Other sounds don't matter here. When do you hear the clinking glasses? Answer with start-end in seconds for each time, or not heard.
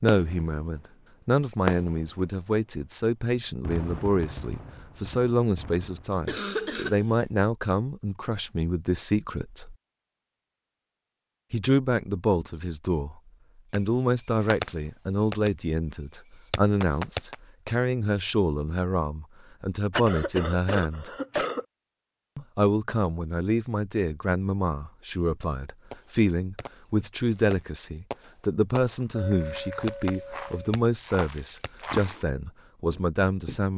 29.1-30.7.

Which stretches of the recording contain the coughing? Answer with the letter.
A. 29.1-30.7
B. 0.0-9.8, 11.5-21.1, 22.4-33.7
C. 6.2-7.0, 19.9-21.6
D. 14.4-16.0
C.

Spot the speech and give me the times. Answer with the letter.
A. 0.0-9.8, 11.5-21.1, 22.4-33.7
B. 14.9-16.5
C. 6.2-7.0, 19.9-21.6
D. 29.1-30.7
A.